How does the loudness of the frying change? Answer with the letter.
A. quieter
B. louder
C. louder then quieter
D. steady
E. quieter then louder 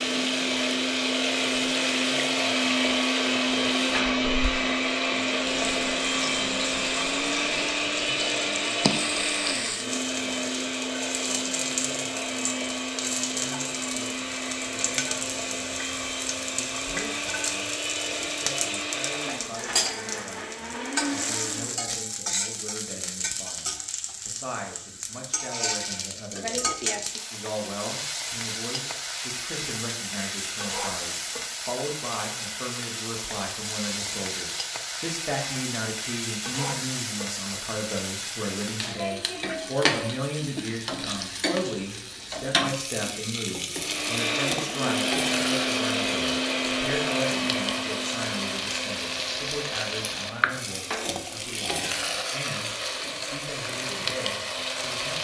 D.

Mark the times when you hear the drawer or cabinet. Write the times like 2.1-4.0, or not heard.
50.4-51.1.